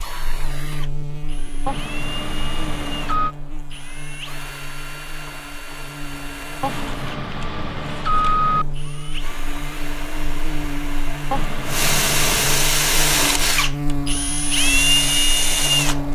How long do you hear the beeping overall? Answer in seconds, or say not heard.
5 s.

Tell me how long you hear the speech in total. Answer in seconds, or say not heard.
not heard.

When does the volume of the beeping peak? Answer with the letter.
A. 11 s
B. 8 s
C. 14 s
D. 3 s
B.